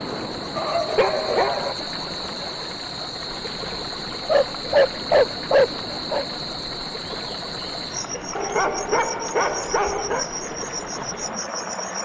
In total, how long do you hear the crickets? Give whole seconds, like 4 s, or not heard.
12 s.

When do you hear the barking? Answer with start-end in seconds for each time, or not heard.
0.6-1.8, 4.2-6.2, 8.3-10.2.